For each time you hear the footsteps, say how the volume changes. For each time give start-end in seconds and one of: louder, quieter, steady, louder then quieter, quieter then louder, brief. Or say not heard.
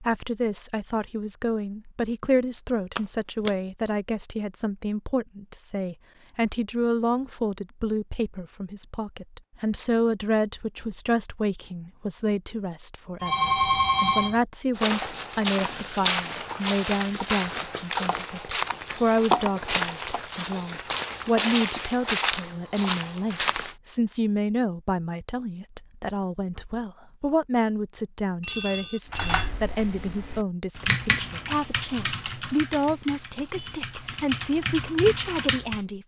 14.8-23.8 steady.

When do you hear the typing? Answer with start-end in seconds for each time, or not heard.
29.1-35.8.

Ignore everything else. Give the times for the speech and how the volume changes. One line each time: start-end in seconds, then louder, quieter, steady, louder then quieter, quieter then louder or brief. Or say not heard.
0.0-36.0 steady.